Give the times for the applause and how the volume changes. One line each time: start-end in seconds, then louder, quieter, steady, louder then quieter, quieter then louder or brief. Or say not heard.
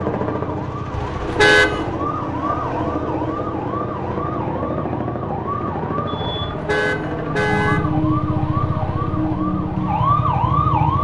not heard.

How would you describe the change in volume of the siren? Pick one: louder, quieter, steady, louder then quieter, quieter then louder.
louder.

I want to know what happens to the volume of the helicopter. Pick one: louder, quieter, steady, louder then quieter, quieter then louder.
quieter.